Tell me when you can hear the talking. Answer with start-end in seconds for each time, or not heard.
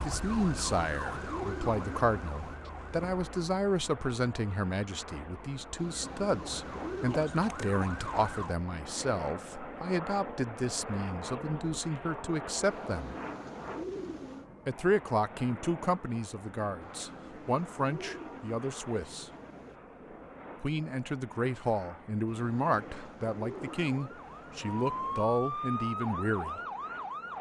0.0-13.2, 14.7-19.3, 20.6-26.6.